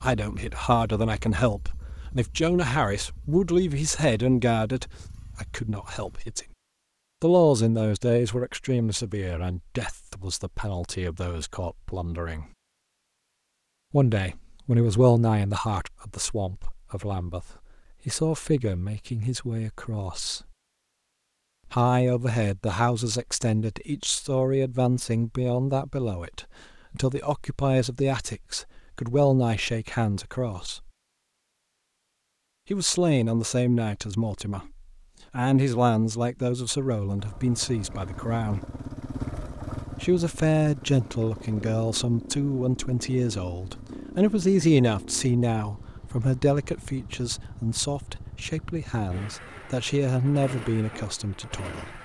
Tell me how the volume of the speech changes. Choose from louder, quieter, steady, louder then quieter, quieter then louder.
steady.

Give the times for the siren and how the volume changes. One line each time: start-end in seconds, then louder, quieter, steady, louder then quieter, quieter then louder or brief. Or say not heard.
not heard.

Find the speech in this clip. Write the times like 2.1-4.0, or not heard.
0.0-6.5, 7.2-12.4, 13.9-20.4, 21.7-30.9, 32.7-38.8, 40.0-52.0.